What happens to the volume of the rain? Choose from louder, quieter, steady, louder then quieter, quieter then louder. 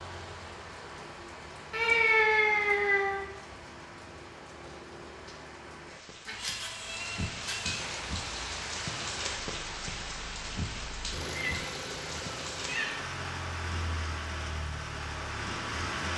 louder.